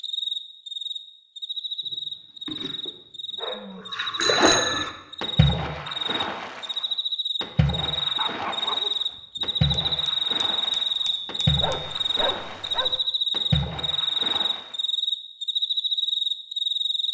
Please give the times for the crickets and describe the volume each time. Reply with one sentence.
The crickets can be heard from 0.0 to 17.0 s, getting louder.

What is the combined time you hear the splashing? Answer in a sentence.
You can hear the splashing for 11 seconds altogether.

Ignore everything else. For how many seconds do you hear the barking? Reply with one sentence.
The barking can be heard for 5 seconds in total.